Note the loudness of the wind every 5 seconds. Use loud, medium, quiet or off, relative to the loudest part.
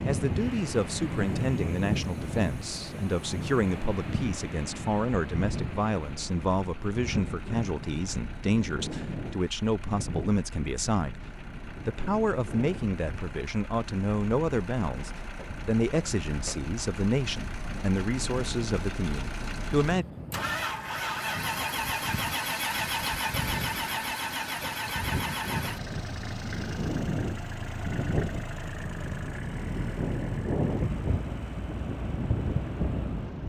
loud, medium, medium, medium, medium, loud, loud.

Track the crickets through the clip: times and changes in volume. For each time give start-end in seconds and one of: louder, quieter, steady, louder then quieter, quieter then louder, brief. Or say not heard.
not heard.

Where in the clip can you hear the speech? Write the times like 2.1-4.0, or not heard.
0.1-11.2, 11.8-20.1.